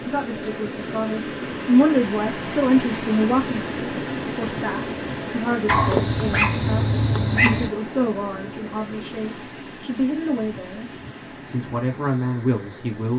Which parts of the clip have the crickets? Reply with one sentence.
You can't hear the crickets here.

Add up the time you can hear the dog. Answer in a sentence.
The dog can be heard for 2 seconds in total.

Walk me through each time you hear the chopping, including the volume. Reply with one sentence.
The chopping can't be heard in this clip.